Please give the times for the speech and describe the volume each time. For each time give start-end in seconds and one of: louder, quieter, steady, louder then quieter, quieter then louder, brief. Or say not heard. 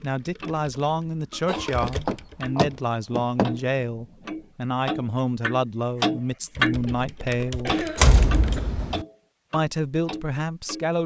0.0-7.8 steady
9.5-11.0 brief.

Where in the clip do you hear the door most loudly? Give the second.
8 s.